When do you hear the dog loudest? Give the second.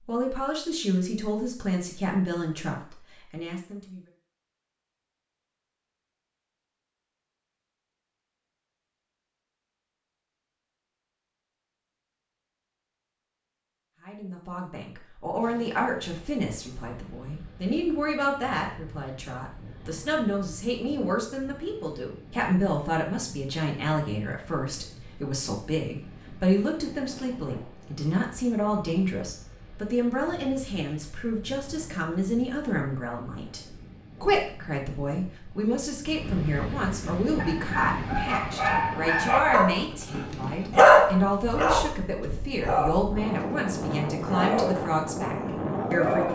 41 s.